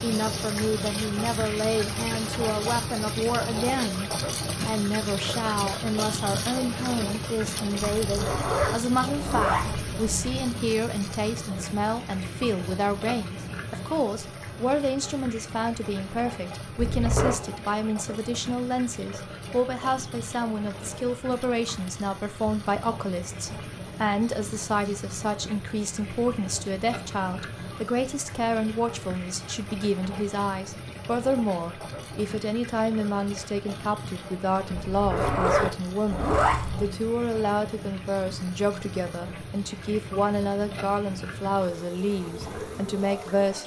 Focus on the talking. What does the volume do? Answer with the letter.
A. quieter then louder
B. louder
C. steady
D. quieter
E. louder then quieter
C.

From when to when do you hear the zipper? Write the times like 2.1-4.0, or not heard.
8.0-10.4, 16.8-17.4, 34.8-37.0.